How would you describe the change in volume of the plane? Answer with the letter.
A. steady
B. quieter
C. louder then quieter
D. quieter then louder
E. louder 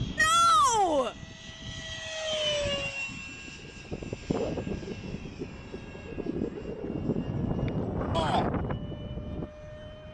E.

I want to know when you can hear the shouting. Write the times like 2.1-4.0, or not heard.
0.1-1.1, 8.1-8.5.